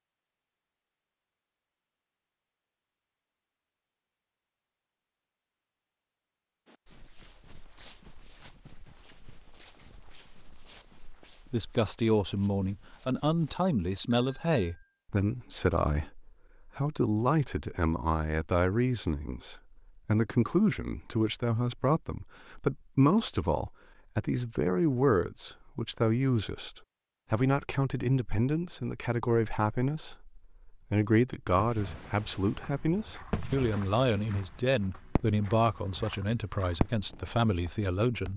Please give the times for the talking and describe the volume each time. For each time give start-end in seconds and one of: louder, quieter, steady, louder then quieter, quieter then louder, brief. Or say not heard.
11.5-38.3 steady.